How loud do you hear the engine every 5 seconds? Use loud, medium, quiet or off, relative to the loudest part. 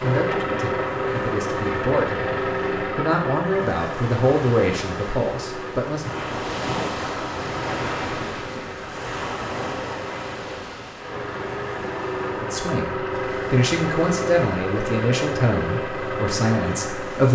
loud, medium, loud, loud.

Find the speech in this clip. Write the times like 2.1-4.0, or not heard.
0.0-6.2, 12.3-17.3.